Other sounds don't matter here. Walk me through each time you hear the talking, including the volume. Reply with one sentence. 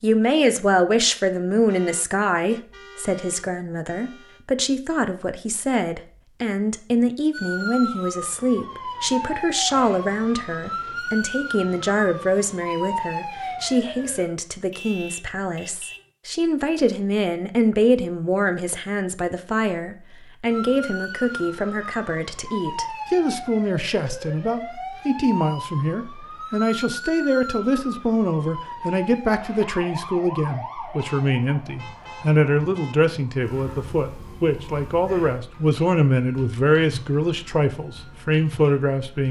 The talking can be heard from 0.0 to 39.2 s, at a steady volume.